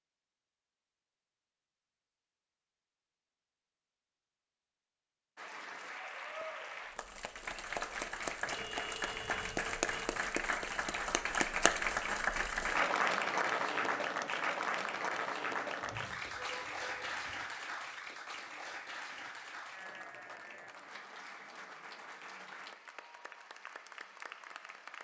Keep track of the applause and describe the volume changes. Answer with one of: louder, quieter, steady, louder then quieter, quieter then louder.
louder then quieter.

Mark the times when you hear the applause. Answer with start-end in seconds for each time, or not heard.
5.3-24.9.